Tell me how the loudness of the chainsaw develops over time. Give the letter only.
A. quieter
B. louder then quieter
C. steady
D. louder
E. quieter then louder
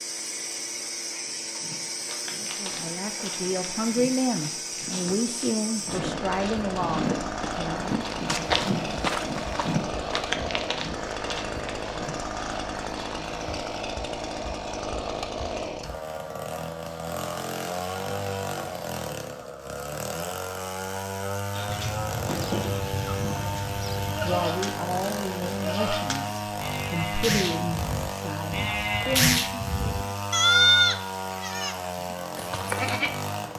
C.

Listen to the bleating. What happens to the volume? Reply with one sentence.
The volume of the bleating goes up.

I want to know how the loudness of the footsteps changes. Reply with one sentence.
The volume of the footsteps goes up, then down.